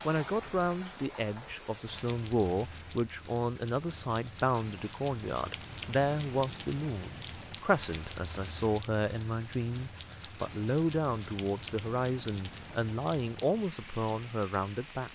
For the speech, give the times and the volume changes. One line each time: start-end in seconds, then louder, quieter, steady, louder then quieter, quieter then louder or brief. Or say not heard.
0.1-15.1 steady.